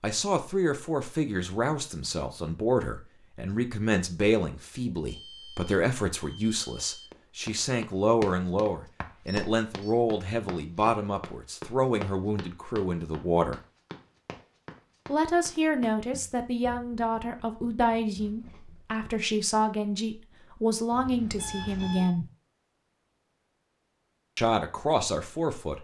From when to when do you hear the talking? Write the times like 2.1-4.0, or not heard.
0.0-13.6, 15.1-22.2, 24.4-25.7.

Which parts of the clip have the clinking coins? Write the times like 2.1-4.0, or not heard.
not heard.